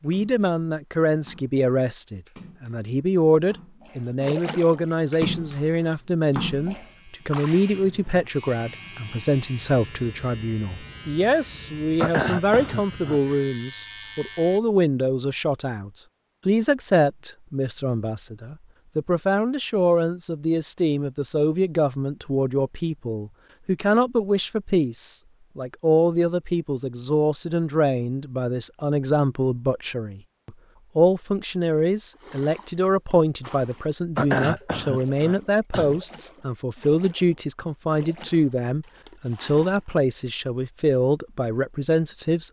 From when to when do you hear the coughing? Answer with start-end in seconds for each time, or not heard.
11.9-13.2, 34.1-36.0.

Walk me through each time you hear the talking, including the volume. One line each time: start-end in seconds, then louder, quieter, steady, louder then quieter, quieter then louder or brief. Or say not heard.
0.0-42.4 steady.